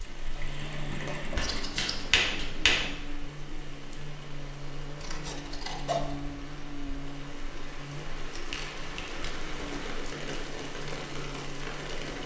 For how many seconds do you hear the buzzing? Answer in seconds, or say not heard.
12 s.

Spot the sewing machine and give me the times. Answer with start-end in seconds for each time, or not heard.
0.0-1.8.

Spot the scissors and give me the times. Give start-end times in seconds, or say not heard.
1.4-2.1, 5.0-6.2, 8.3-9.5.